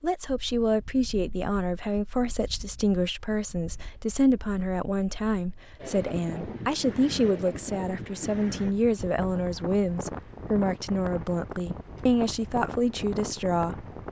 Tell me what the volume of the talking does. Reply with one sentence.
The volume of the talking stays about the same.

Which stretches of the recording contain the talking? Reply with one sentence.
The talking can be heard from 0.0 to 13.8 s.